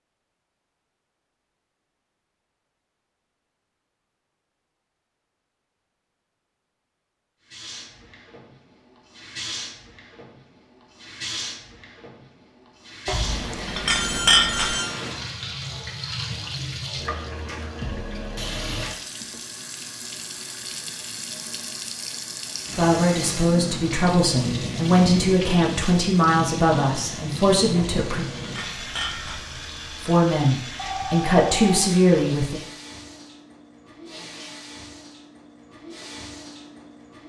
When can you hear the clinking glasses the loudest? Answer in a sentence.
The volume of the clinking glasses peaks at 14 seconds.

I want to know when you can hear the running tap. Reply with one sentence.
You can hear the running tap from 7.5 to 37.2 s.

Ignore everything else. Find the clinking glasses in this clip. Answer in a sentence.
The clinking glasses can be heard from 13.1 to 14.8 s and from 27.8 to 29.4 s.